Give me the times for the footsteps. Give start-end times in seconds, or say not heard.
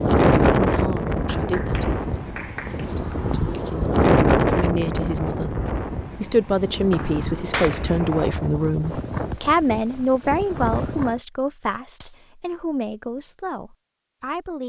not heard.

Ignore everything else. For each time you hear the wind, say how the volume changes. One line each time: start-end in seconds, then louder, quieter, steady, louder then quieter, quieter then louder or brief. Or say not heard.
0.0-11.2 quieter.